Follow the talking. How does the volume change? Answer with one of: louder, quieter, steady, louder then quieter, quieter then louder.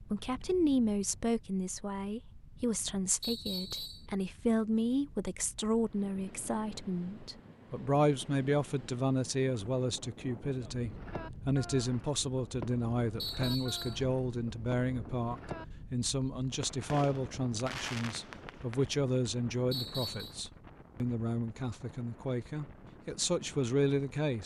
steady.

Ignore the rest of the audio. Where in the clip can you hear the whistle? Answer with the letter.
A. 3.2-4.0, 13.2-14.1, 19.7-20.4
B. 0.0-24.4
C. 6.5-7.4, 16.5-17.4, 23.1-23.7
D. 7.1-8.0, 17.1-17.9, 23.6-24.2
A.